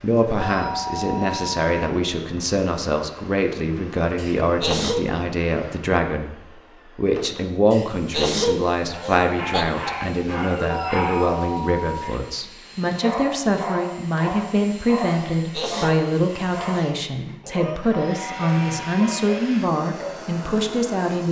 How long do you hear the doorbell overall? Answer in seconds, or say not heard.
4 s.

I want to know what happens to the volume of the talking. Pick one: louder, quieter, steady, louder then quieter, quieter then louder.
steady.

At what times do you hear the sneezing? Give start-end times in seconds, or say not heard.
4.2-5.0, 7.7-9.7, 15.3-16.0.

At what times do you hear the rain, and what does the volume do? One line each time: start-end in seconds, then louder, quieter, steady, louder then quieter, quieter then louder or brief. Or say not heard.
not heard.